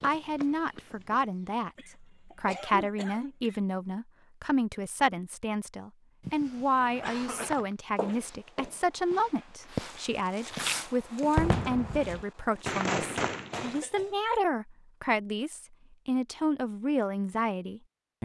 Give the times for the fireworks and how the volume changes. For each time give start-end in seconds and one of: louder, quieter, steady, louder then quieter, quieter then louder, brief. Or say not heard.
6.6-13.8 quieter then louder.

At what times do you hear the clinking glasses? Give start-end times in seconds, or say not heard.
not heard.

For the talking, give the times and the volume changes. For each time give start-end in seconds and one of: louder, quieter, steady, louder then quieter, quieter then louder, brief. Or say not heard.
0.0-18.2 steady.